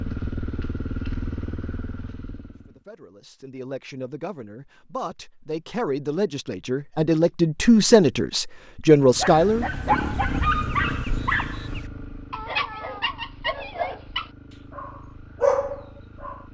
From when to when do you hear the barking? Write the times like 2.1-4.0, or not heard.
9.2-16.4.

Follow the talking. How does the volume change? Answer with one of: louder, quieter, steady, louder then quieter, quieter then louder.
louder.